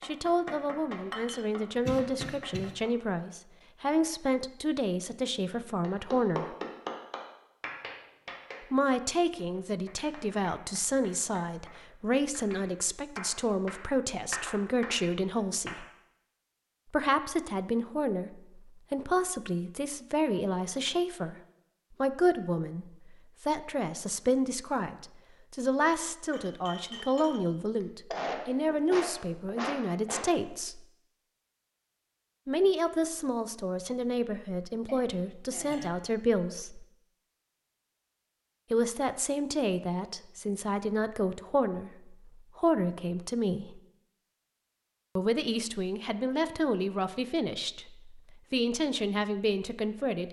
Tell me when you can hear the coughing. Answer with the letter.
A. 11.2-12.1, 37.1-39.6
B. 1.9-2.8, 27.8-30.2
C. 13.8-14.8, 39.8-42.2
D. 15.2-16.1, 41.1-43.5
B.